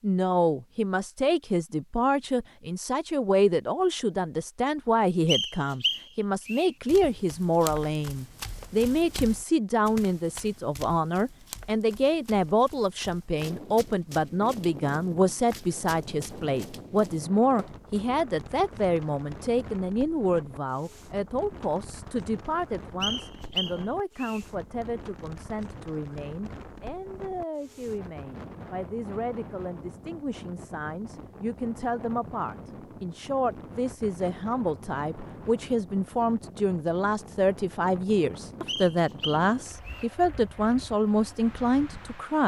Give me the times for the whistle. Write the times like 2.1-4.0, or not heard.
5.2-6.7, 23.0-24.4, 38.6-40.1.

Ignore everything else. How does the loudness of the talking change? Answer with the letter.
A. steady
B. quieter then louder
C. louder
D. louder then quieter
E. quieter
B.